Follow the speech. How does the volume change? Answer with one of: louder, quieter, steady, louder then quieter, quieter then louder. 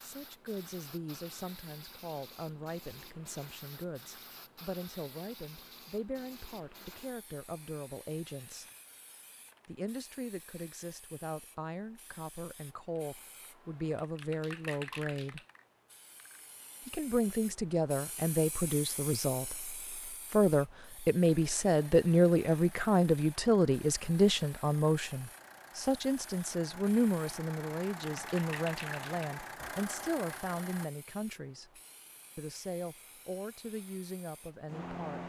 louder then quieter.